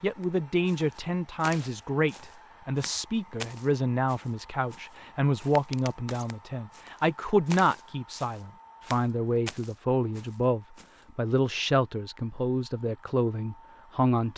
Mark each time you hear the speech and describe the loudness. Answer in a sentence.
The speech can be heard from 0.0 to 14.3 s, at a steady volume.